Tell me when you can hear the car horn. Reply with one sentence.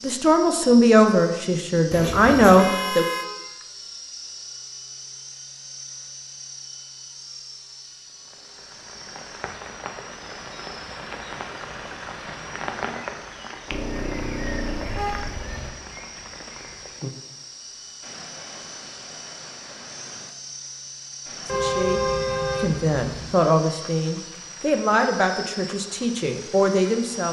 You can hear the car horn from 1.9 to 3.2 s, from 13.7 to 15.7 s and from 21.4 to 23.4 s.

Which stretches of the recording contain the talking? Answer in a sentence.
You can hear the talking from 0.0 to 3.0 s and from 21.4 to 27.2 s.